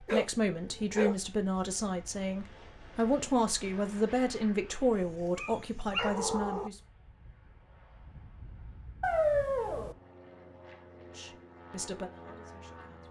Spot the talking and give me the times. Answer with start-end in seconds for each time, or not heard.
0.0-6.8, 11.2-13.0.